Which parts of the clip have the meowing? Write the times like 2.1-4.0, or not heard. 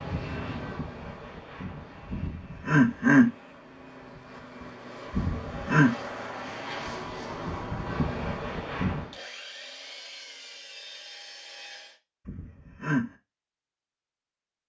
not heard.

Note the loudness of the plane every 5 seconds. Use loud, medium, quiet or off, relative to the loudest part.
medium, loud, off.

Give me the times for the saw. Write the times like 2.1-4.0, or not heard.
9.1-12.0.